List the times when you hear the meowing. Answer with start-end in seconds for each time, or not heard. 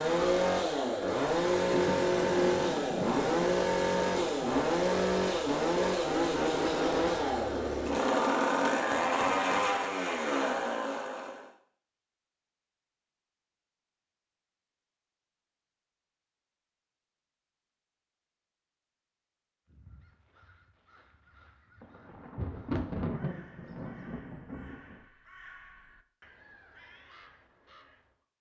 not heard.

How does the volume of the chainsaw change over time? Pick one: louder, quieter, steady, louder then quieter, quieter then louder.
steady.